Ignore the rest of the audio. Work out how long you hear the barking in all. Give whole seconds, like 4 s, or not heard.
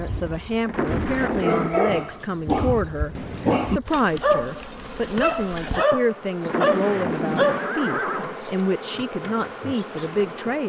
7 s.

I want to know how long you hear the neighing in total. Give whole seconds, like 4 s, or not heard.
3 s.